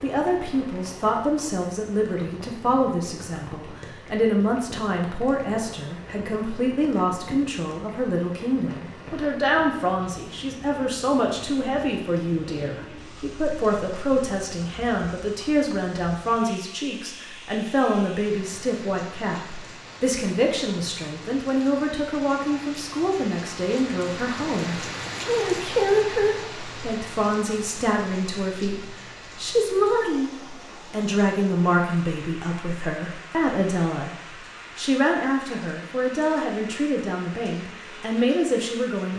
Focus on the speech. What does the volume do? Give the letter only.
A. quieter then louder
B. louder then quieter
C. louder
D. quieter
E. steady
E.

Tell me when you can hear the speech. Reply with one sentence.
You can hear the speech from 0.0 to 39.1 s.